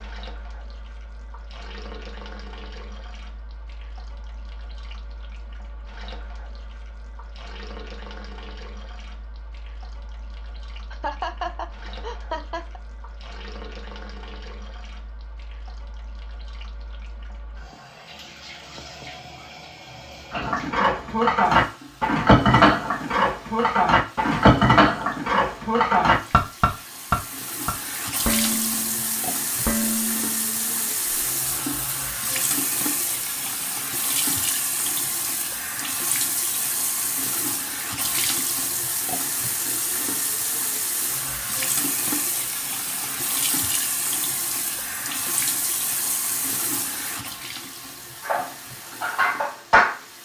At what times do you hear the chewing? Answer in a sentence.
The chewing can't be heard in this clip.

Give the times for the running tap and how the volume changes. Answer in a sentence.
You can hear the running tap from 0.0 to 50.1 s, getting louder.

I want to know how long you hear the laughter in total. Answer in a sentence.
You can hear the laughter for 2 seconds altogether.